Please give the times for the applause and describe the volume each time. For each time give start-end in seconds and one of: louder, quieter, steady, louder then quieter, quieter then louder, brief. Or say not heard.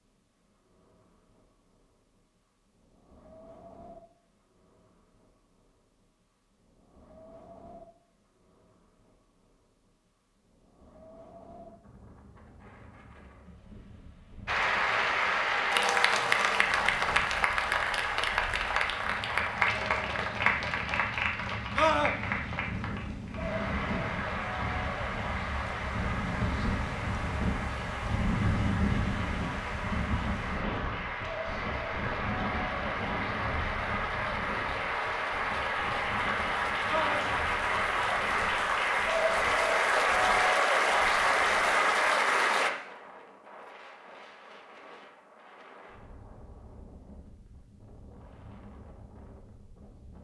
14.4-42.7 quieter then louder.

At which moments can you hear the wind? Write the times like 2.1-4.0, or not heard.
0.0-50.2.